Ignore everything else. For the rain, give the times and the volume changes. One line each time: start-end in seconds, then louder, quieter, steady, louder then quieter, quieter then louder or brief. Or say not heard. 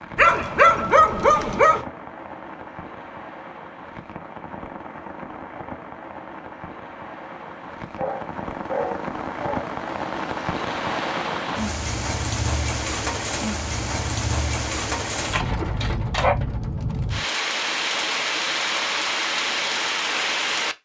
0.0-20.8 louder.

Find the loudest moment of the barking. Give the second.
1 s.